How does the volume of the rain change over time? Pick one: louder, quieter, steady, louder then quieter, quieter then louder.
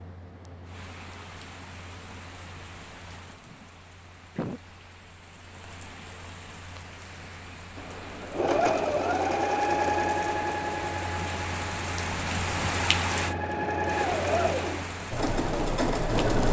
louder.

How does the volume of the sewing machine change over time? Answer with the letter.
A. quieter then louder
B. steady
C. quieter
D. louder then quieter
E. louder
A.